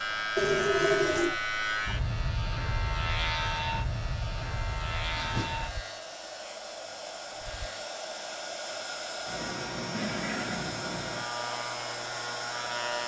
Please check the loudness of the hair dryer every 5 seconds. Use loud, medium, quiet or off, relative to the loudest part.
medium, loud, loud.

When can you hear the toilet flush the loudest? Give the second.
1 s.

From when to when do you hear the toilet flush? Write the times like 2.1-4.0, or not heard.
0.3-1.4, 5.2-5.8, 9.9-10.7.